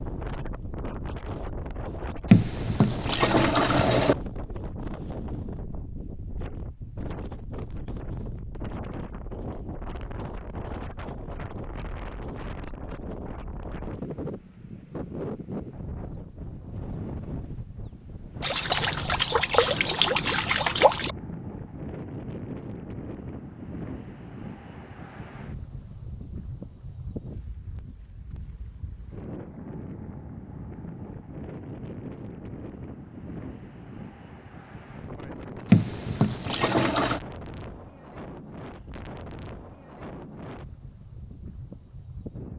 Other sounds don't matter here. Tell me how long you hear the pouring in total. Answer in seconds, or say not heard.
6 s.